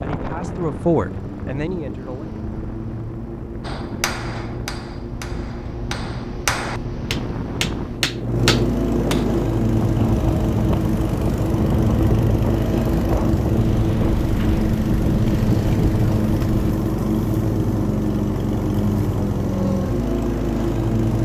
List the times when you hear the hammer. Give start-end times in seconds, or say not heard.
3.6-9.2.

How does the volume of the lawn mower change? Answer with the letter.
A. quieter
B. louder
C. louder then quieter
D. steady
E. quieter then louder
B.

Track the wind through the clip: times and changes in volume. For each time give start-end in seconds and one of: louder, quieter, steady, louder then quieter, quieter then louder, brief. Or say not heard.
0.0-16.8 louder.